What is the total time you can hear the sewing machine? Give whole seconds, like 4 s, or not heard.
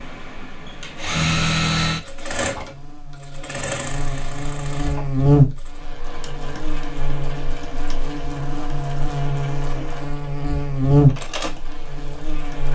13 s.